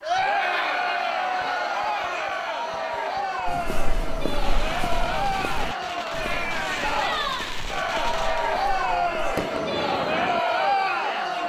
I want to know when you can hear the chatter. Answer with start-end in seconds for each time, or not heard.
0.0-11.4.